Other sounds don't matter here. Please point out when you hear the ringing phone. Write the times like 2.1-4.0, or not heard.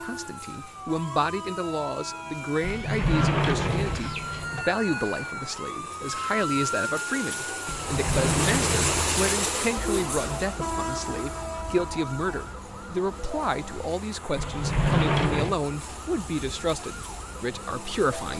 not heard.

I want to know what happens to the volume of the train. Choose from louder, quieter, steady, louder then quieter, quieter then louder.
louder then quieter.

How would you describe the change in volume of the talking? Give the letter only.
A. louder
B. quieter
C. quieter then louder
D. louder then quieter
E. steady
E.